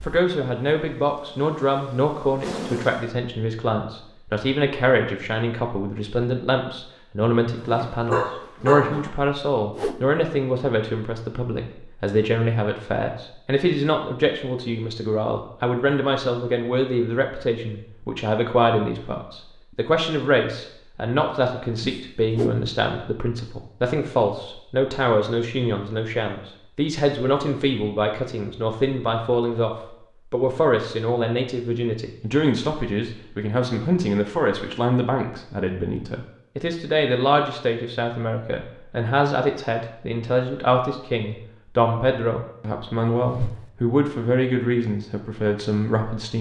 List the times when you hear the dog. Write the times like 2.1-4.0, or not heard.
7.5-9.1.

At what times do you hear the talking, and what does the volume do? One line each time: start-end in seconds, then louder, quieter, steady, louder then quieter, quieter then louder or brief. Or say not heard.
0.0-46.3 steady.